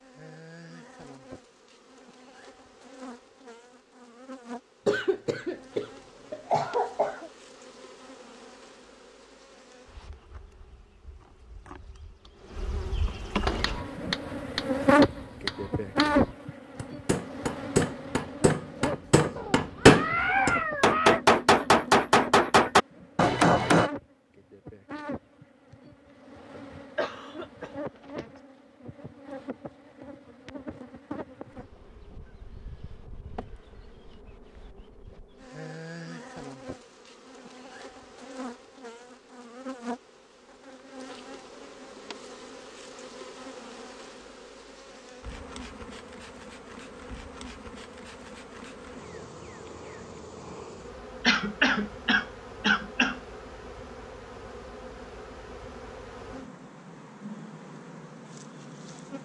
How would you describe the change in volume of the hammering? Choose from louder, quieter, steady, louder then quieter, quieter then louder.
louder.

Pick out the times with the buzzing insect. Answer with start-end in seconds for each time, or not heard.
0.0-59.2.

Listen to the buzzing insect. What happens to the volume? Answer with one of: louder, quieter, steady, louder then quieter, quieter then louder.
louder then quieter.